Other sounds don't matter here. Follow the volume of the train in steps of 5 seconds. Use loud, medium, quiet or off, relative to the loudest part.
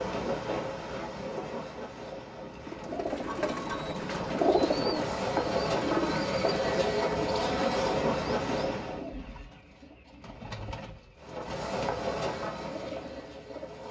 medium, loud, medium.